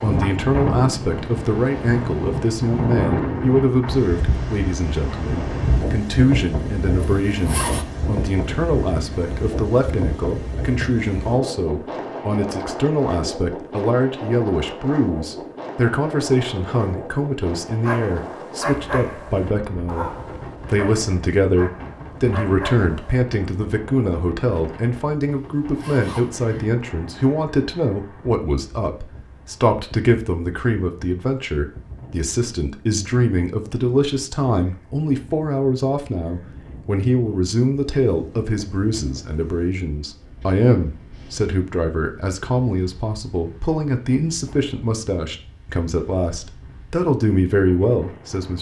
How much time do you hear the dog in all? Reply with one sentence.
You can hear the dog for 5 seconds altogether.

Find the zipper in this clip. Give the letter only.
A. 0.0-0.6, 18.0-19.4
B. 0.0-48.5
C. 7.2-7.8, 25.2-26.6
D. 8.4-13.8
C.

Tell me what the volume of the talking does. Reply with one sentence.
The volume of the talking stays about the same.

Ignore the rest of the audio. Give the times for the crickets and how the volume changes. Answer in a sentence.
The crickets can't be heard in this clip.